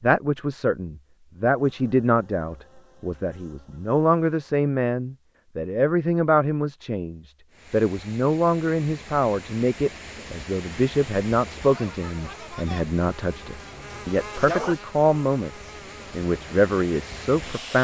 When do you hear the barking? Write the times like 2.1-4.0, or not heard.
not heard.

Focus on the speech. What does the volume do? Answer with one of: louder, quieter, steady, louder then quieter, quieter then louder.
steady.